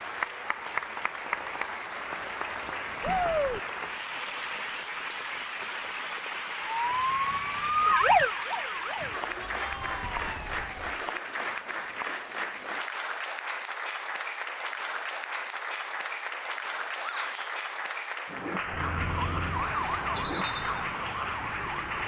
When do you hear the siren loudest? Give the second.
8 s.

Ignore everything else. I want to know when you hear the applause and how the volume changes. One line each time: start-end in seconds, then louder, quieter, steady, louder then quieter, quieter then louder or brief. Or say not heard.
0.0-22.0 steady.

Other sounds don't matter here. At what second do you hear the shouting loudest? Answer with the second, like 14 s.
3 s.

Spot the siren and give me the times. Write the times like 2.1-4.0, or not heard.
6.7-11.1, 18.6-22.0.